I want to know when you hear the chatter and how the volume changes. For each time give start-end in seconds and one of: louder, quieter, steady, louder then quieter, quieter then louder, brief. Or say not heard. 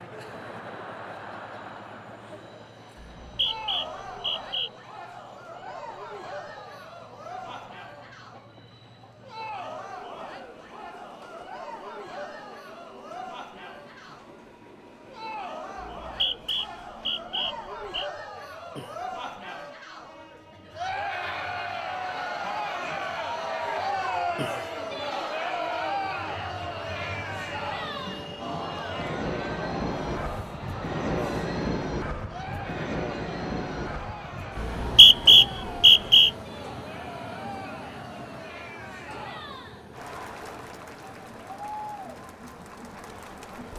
0.0-43.7 louder then quieter.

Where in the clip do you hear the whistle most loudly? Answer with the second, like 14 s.
35 s.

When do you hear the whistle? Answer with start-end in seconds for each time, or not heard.
3.0-4.7, 15.8-18.1, 34.5-36.3.